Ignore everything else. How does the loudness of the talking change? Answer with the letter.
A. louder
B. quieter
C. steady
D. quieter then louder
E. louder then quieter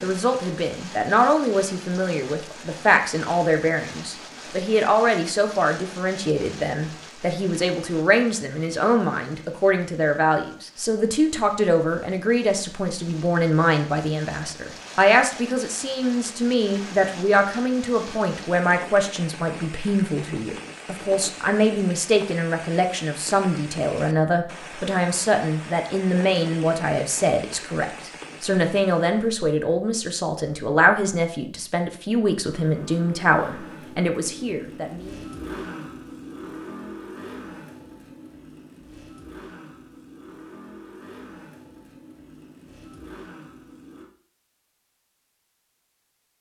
C.